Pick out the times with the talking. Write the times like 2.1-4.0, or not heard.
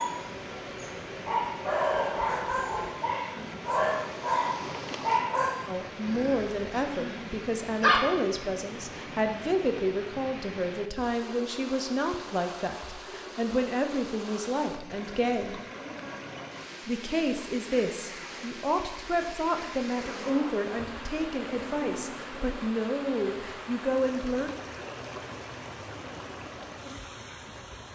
5.7-15.6, 16.9-24.5.